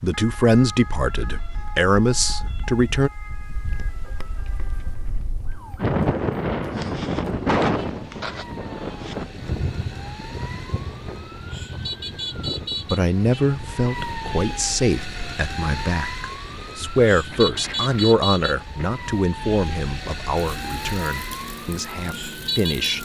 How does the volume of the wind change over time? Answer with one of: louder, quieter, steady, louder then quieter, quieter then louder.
louder then quieter.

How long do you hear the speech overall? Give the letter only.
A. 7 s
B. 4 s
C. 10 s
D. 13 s
D.